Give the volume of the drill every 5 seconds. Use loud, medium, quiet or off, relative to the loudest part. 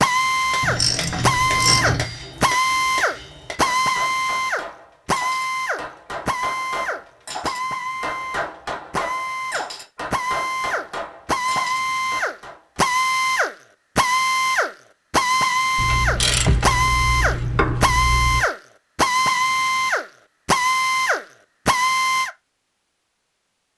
loud, medium, loud, loud, loud.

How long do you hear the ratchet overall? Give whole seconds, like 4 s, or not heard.
4 s.